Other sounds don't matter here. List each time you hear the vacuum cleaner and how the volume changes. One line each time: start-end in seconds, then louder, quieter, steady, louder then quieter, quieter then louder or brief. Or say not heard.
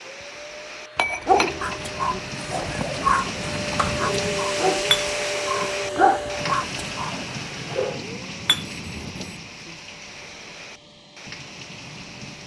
0.0-12.4 louder then quieter.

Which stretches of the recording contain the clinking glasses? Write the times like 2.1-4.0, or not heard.
0.9-2.2, 4.9-5.7, 8.4-9.2.